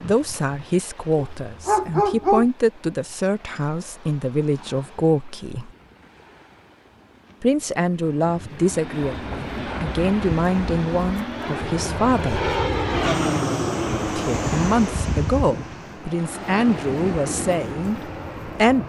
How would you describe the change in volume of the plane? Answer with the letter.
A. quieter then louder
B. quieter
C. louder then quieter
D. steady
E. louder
C.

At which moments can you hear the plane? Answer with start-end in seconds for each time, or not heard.
8.7-18.8.